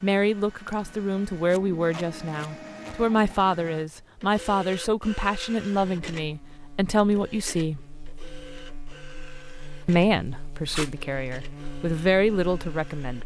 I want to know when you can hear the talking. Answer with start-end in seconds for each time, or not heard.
0.0-7.8, 9.8-13.2.